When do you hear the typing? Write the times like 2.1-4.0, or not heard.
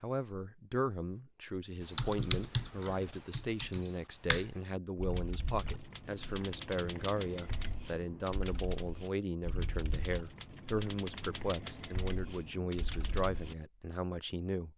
1.8-13.6.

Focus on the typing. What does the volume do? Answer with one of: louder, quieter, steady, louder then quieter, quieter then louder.
quieter.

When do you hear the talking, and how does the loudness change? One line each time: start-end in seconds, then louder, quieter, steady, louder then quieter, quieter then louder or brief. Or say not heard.
0.0-14.7 steady.